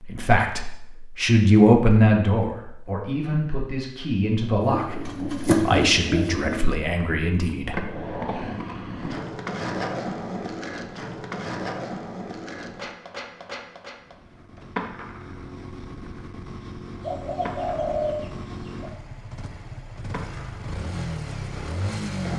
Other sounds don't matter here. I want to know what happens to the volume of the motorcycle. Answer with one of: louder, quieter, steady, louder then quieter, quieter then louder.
louder.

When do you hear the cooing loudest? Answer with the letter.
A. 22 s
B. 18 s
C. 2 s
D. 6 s
D.